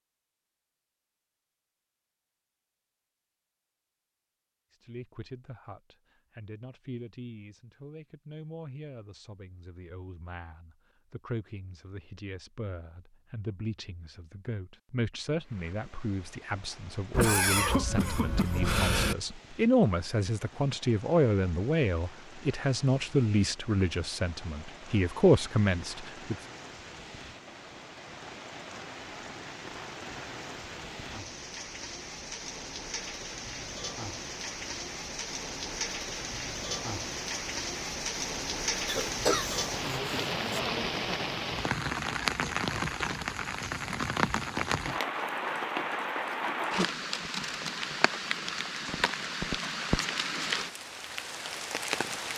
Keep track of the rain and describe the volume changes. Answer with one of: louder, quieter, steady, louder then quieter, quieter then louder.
louder.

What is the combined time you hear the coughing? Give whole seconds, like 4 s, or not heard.
4 s.